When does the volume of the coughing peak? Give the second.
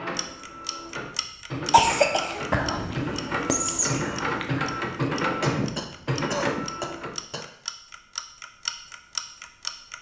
2 s.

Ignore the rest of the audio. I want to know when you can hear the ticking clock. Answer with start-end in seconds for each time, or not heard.
0.1-9.9.